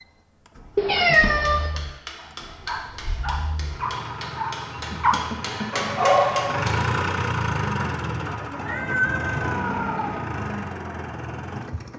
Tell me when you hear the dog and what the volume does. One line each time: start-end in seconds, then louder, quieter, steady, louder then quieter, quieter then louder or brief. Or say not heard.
2.1-6.8 louder.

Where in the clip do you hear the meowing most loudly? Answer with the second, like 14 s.
1 s.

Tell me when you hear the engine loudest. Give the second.
7 s.